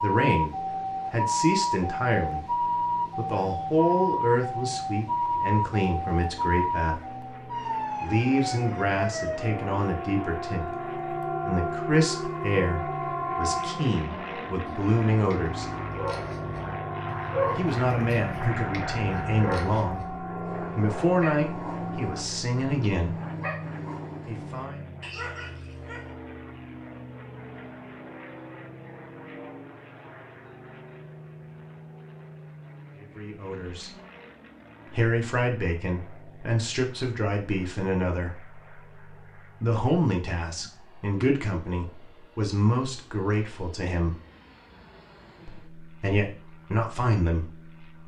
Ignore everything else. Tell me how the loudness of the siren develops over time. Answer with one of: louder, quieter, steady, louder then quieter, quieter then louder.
quieter.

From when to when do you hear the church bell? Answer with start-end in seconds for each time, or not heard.
not heard.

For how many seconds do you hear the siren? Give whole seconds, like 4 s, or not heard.
22 s.